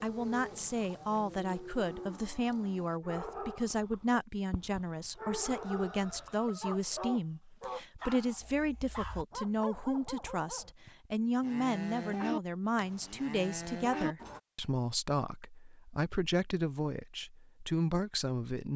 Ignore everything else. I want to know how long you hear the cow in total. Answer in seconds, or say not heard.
6 s.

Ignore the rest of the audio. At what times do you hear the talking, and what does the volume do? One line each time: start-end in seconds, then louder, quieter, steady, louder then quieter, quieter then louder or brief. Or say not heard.
0.0-18.7 steady.